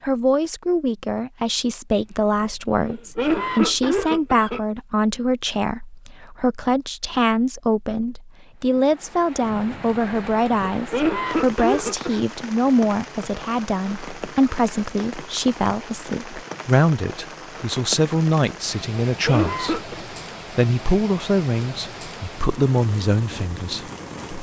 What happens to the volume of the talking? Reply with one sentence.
The loudness of the talking stays about the same.